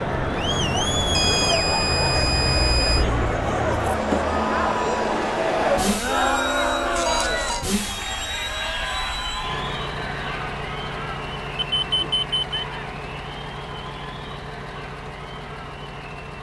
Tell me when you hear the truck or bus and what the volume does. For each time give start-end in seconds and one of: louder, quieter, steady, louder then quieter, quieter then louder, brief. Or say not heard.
0.0-16.3 quieter.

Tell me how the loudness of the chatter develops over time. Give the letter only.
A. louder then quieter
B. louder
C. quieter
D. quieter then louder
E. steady
C.